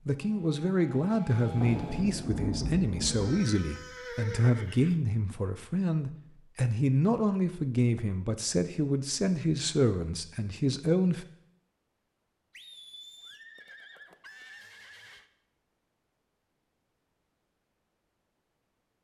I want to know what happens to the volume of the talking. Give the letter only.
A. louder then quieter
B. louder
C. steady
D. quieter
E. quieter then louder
C.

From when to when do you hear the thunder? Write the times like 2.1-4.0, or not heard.
1.6-3.5.